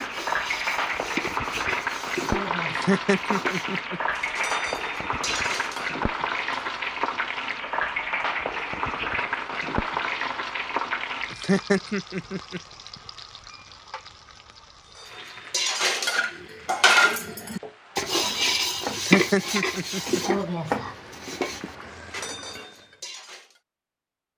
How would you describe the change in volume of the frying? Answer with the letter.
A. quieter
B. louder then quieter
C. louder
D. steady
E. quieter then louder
E.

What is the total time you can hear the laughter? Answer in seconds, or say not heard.
4 s.